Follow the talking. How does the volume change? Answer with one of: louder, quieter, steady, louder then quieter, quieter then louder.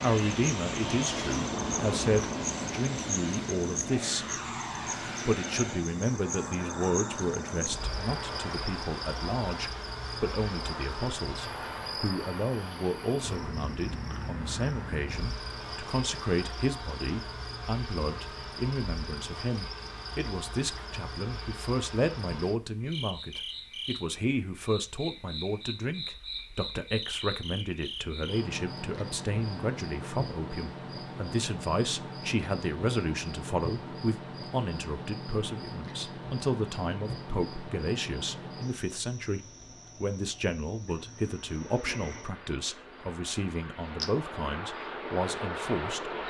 steady.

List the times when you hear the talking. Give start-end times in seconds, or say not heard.
0.0-4.4, 5.2-46.1.